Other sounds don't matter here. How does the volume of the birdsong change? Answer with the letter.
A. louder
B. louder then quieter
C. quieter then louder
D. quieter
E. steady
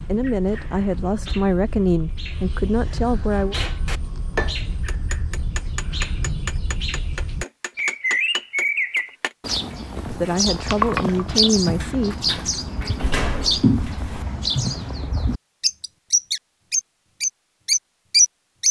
A.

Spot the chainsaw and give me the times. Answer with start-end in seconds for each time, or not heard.
not heard.